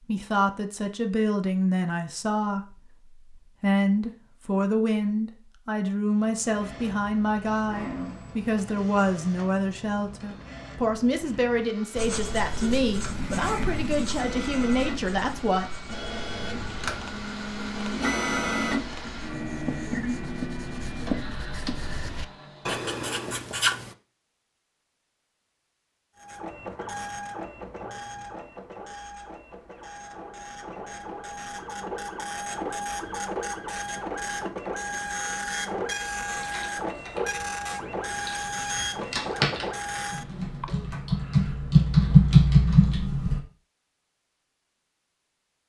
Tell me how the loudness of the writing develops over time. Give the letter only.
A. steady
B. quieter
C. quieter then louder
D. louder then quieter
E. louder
C.